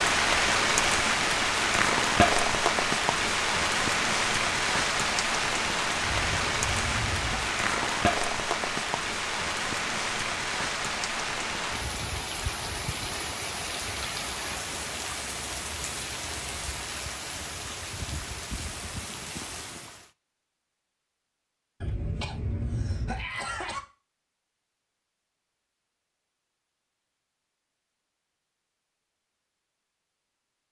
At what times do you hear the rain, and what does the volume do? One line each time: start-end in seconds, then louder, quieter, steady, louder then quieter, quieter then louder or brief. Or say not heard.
0.0-20.1 quieter.